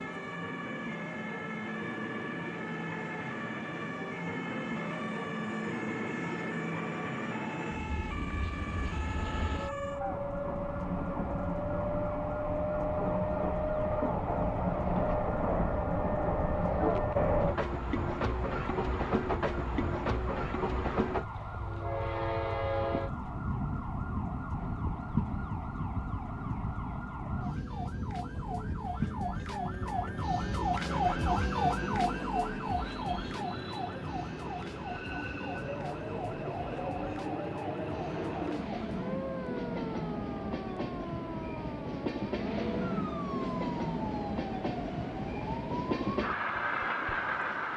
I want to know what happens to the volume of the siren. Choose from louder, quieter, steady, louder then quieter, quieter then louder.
louder then quieter.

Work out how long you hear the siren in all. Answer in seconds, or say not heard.
48 s.